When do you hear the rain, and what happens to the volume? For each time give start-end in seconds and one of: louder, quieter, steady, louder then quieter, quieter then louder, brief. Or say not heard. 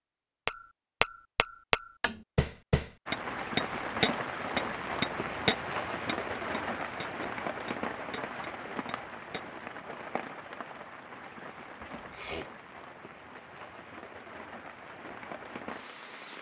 3.0-16.3 quieter.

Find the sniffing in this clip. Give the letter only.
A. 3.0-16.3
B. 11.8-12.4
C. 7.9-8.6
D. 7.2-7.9
B.